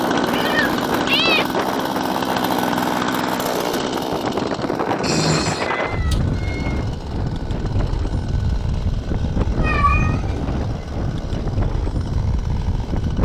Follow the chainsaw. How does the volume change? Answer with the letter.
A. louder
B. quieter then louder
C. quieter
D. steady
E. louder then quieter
C.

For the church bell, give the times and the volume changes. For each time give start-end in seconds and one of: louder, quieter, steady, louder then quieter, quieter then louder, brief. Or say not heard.
not heard.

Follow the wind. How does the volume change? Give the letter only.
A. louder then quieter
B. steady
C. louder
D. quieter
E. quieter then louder
B.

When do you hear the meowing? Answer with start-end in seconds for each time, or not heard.
0.3-1.6, 5.0-6.8, 9.6-10.4.